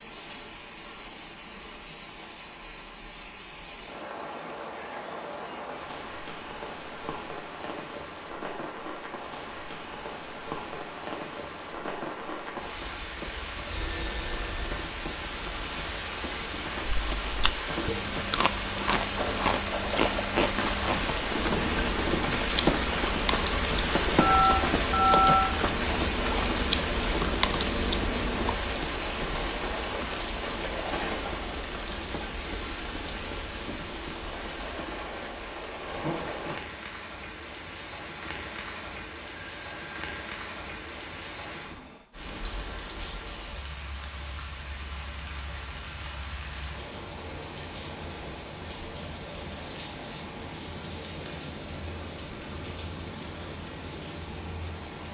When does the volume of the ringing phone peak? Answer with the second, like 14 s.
25 s.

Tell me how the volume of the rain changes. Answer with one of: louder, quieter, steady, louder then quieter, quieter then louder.
louder then quieter.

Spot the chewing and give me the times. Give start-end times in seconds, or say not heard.
16.9-28.6.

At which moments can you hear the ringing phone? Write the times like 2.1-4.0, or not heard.
13.7-14.8, 24.1-25.4, 39.2-40.3.